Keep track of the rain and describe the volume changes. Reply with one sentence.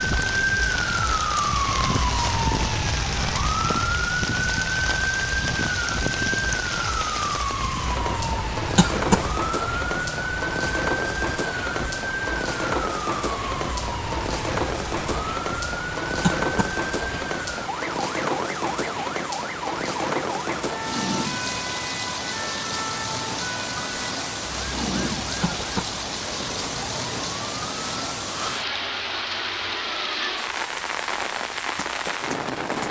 The volume of the rain stays about the same.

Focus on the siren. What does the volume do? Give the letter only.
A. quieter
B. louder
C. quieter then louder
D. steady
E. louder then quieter
A.